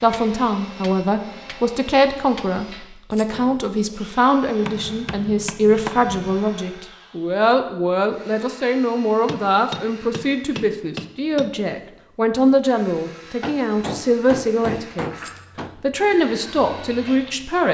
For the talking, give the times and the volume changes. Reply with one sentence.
You can hear the talking from 0.0 to 15.2 s, at a steady volume; and briefly from 15.8 to 17.6 s.